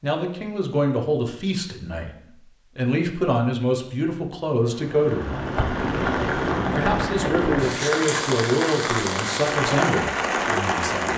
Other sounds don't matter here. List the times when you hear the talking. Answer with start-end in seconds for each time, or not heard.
0.0-5.4, 6.8-11.1.